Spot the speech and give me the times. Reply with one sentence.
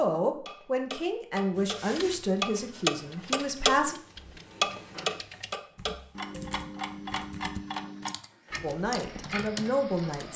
You can hear the speech from 0.0 to 4.0 s and from 8.6 to 10.3 s.